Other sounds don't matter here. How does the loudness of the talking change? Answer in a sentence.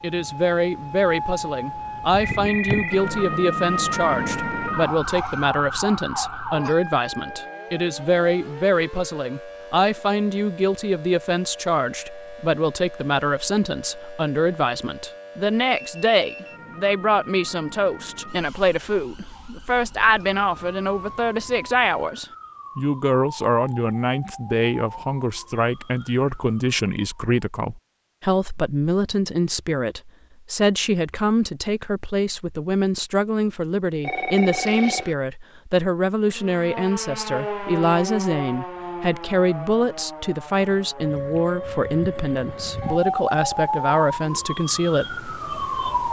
The volume of the talking stays about the same.